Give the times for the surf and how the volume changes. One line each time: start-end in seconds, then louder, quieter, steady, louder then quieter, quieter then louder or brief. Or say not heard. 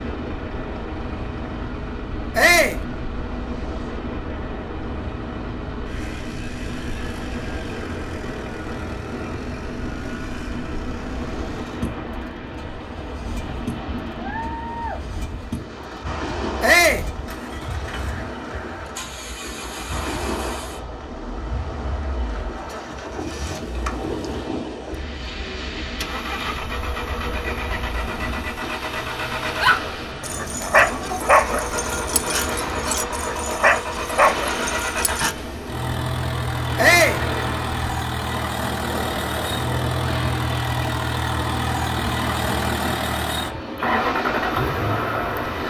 0.0-45.6 steady.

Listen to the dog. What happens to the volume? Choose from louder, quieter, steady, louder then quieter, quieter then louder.
quieter then louder.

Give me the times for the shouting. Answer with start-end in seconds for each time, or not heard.
2.4-2.8, 16.6-17.1, 36.8-37.2.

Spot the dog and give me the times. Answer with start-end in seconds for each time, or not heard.
29.6-35.4.